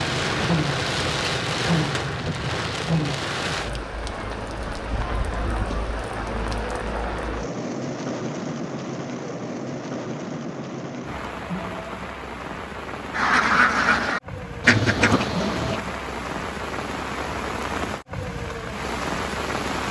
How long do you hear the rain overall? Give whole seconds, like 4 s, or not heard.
20 s.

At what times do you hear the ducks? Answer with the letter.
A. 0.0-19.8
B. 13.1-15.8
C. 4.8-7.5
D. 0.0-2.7
B.